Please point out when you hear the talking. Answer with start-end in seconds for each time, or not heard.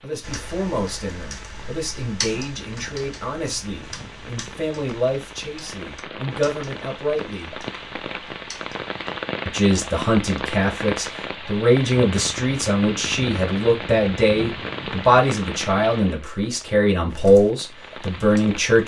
0.0-7.5, 9.4-18.8.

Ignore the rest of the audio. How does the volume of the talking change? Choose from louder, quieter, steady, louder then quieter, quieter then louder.
louder.